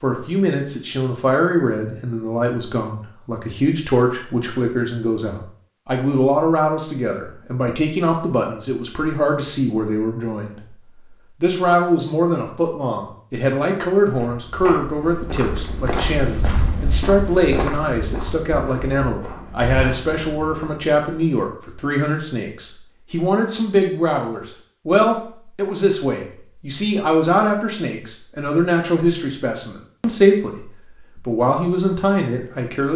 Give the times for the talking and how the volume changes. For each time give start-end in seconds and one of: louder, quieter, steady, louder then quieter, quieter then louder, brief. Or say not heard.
0.0-10.6 steady
11.4-32.9 steady.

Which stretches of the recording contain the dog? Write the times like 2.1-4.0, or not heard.
not heard.